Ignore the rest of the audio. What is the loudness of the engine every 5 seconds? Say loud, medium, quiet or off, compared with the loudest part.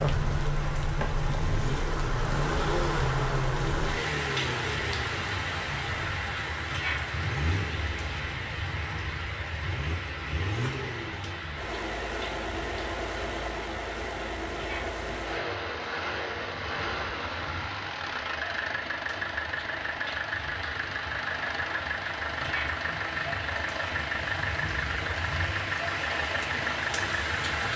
loud, medium, loud, loud, loud, loud.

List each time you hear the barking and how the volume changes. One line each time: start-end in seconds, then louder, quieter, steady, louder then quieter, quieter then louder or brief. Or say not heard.
not heard.